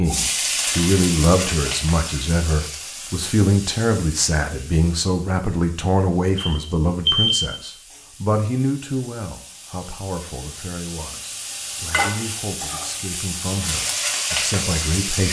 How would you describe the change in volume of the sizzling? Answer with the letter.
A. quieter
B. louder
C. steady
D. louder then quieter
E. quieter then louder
E.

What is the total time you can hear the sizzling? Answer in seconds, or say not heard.
15 s.